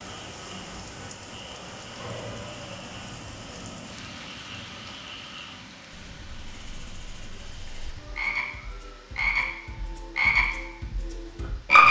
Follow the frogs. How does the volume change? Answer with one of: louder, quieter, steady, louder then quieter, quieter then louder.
louder.